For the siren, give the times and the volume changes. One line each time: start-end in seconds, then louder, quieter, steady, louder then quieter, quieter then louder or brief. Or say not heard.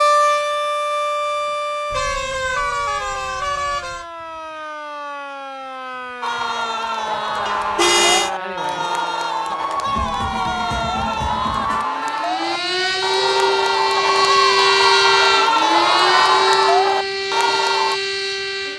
0.0-18.7 quieter then louder.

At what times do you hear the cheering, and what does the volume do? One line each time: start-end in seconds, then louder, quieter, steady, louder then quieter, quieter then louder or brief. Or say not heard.
6.2-18.0 louder.